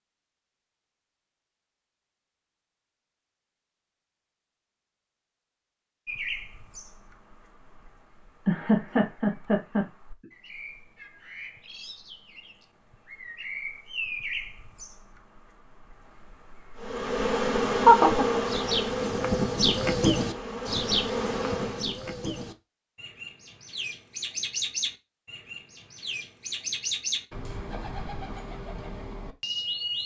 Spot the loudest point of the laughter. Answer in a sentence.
The volume of the laughter peaks at 18 seconds.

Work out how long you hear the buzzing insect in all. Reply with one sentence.
You can hear the buzzing insect for 5 seconds altogether.